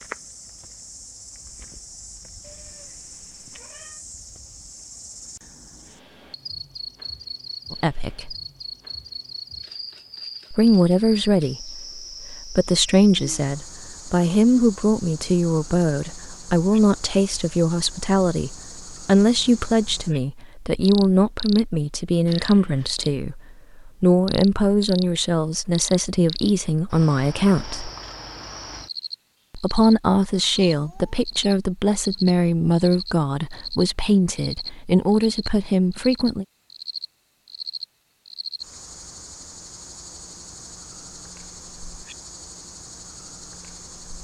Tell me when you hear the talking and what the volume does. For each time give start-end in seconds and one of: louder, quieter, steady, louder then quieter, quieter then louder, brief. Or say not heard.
7.7-8.3 brief
10.5-27.9 steady
29.5-36.5 steady.